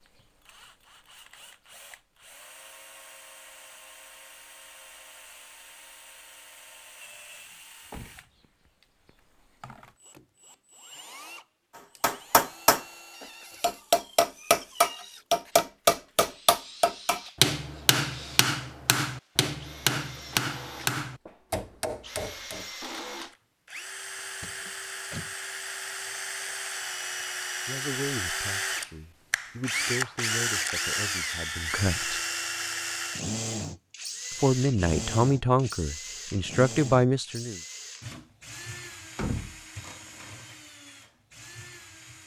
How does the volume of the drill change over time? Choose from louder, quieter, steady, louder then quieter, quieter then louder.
louder then quieter.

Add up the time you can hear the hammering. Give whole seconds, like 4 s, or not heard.
11 s.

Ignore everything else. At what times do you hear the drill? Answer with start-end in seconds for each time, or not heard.
0.0-42.2.